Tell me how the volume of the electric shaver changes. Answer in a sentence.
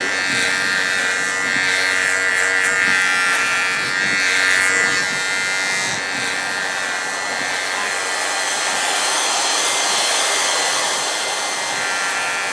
The volume of the electric shaver goes down.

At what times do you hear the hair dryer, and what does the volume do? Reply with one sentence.
You can hear the hair dryer from 0.0 to 12.4 s, getting louder.